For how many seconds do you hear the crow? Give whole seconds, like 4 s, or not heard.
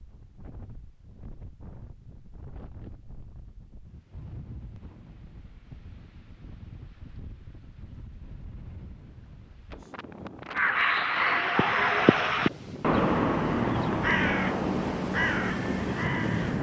6 s.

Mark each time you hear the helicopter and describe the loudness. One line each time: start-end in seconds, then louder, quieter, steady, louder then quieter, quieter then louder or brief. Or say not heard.
not heard.